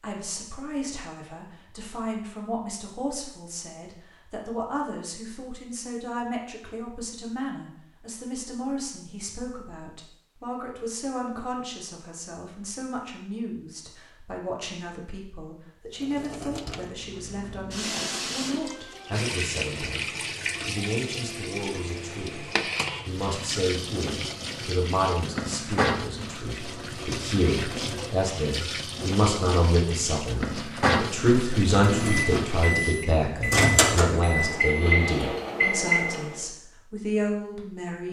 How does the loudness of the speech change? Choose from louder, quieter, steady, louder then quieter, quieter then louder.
louder.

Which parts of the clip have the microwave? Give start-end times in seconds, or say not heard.
31.8-36.4.